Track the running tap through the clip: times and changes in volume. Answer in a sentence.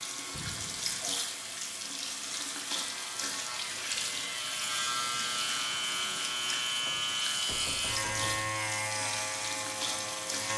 The running tap can be heard from 0.0 to 10.5 s, at a steady volume.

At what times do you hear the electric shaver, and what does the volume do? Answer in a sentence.
You can hear the electric shaver from 0.0 to 10.5 s, getting louder.